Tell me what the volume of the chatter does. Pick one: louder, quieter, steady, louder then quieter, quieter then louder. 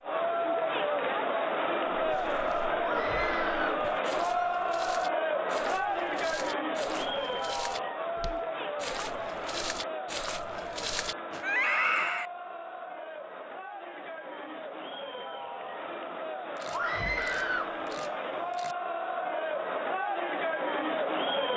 quieter then louder.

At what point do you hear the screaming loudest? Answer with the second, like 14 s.
12 s.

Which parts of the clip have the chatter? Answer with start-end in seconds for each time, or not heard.
0.0-21.5.